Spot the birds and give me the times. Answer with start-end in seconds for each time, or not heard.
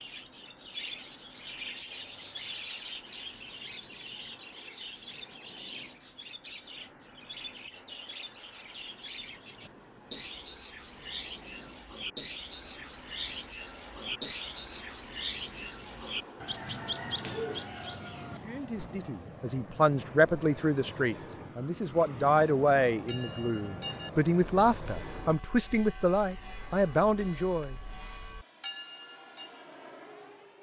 0.0-18.9.